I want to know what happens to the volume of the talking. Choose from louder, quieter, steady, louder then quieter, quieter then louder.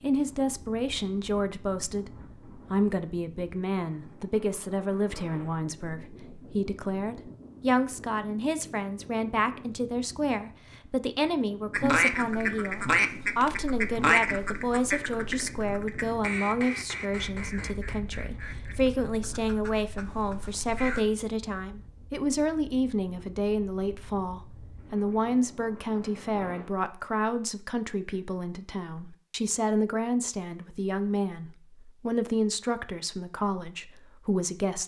steady.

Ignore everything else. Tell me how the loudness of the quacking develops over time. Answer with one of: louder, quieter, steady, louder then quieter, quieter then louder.
quieter.